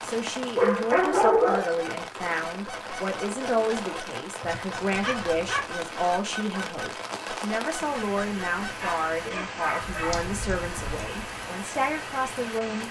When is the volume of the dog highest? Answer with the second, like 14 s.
1 s.